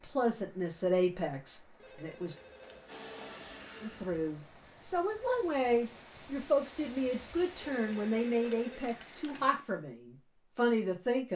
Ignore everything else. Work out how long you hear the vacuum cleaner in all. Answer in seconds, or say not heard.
2 s.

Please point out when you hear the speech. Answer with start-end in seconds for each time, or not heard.
0.0-2.4, 3.8-11.3.